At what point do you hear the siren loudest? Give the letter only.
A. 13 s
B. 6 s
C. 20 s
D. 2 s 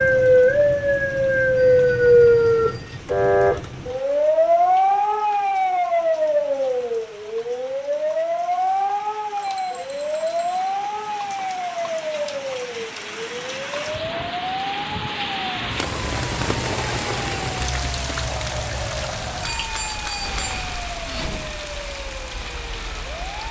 D.